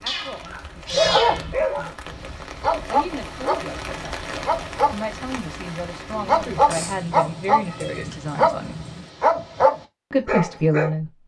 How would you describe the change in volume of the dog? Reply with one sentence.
The loudness of the dog stays about the same.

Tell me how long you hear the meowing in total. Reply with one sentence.
You can hear the meowing for 4 seconds altogether.